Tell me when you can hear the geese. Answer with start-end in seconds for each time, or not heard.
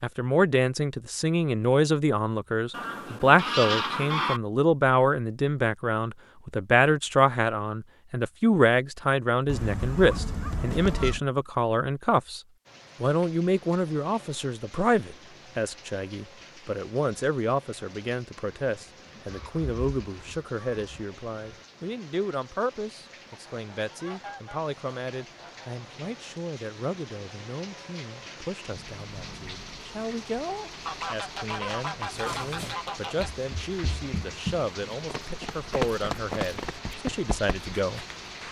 2.7-4.4, 9.4-11.2, 19.2-21.1, 23.3-25.7, 30.9-33.3.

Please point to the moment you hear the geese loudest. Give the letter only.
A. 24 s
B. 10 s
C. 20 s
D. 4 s
D.